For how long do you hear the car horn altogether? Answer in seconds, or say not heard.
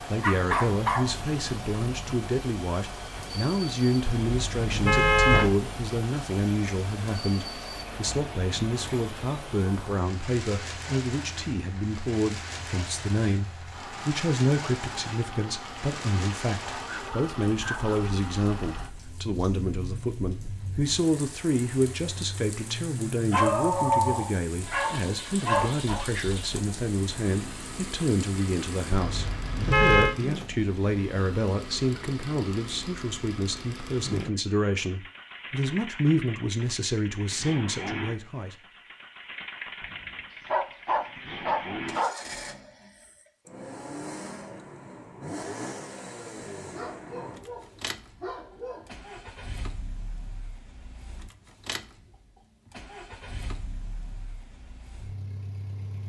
3 s.